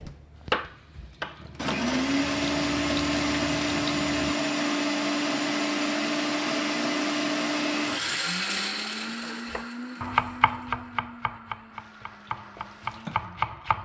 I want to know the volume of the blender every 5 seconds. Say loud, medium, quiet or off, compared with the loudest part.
loud, loud, quiet.